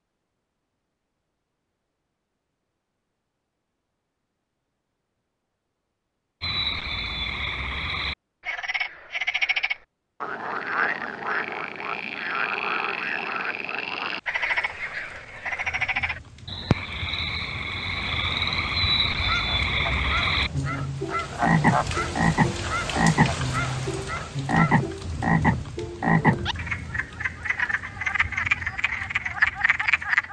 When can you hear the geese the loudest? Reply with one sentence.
The loudest moment of the geese is at 22 seconds.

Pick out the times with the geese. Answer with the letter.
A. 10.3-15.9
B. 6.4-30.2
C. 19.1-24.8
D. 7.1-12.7
C.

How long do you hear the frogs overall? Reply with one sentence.
The frogs can be heard for 24 seconds in total.